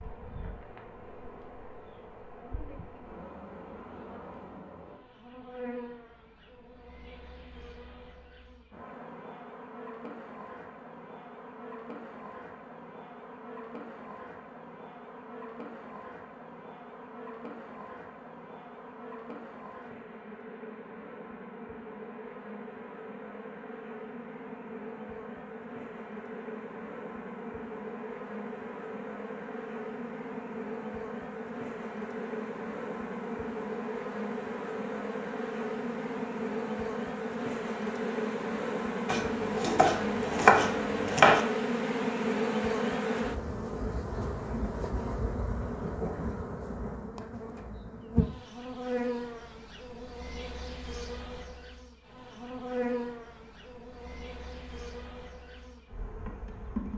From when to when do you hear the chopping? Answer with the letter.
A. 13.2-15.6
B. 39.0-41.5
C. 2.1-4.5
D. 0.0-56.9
B.